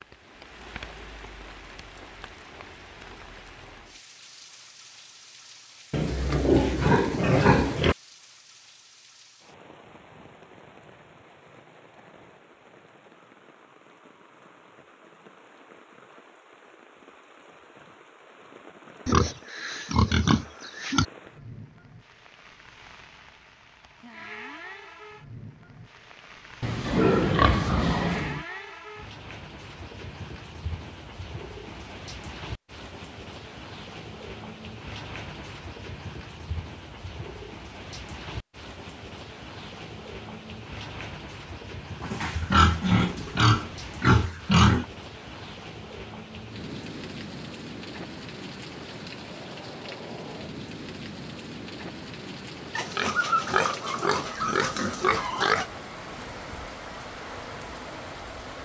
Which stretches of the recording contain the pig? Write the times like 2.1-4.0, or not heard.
5.9-8.0, 19.1-21.1, 26.6-28.4, 42.0-44.9, 52.8-55.6.